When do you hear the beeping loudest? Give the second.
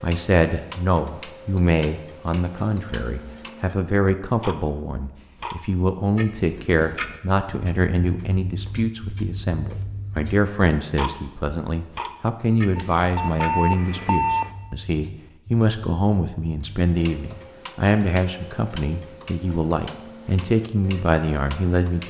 14 s.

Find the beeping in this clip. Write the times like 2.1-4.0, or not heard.
12.8-14.5.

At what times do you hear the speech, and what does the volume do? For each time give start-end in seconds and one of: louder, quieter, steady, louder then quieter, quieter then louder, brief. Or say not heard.
0.0-22.0 steady.